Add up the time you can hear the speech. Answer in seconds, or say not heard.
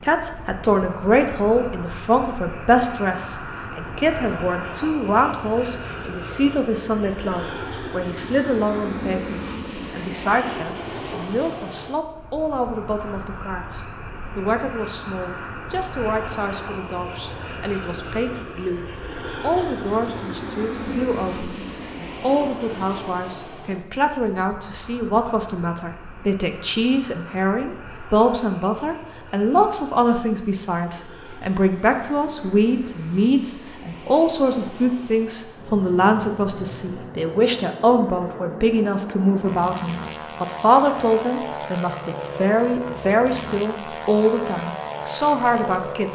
46 s.